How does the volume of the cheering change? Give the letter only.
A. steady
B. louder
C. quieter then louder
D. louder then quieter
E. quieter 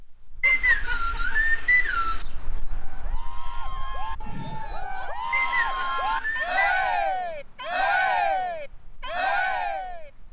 B.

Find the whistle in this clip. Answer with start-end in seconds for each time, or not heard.
0.4-2.2, 5.3-6.8.